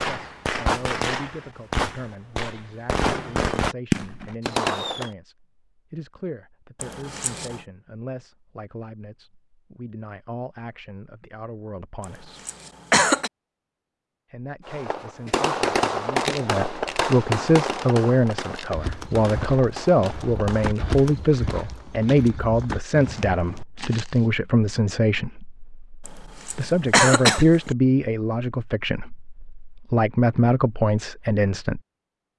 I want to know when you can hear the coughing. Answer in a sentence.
You can hear the coughing from 6.8 to 7.6 s, from 12.0 to 13.3 s and from 26.1 to 27.7 s.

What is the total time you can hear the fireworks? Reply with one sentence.
You can hear the fireworks for 11 seconds altogether.